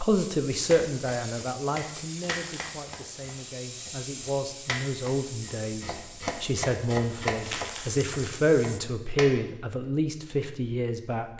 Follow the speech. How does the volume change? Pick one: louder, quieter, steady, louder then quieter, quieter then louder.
quieter then louder.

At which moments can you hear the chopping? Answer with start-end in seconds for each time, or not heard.
0.7-9.3.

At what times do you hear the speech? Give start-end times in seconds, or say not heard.
0.0-11.3.